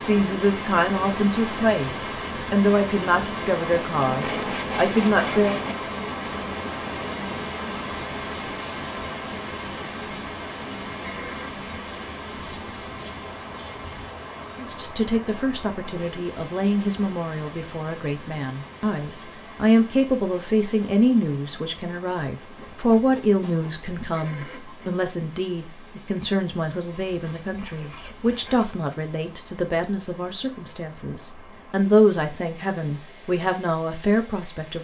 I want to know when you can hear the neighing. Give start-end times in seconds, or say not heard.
11.0-11.7, 24.1-24.9.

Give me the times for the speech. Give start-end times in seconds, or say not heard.
0.0-5.6, 14.6-34.7.